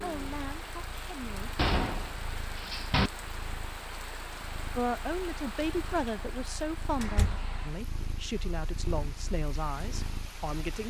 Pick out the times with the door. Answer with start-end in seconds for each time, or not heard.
1.6-3.1, 7.0-7.5.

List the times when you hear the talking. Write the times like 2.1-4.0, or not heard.
0.0-1.6, 4.8-10.8.